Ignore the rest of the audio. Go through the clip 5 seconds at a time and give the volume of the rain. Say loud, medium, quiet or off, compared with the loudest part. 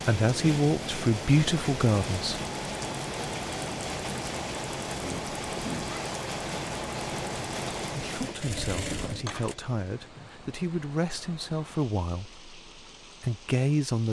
loud, loud, quiet.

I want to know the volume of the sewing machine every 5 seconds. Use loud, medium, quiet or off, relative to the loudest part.
loud, loud, off.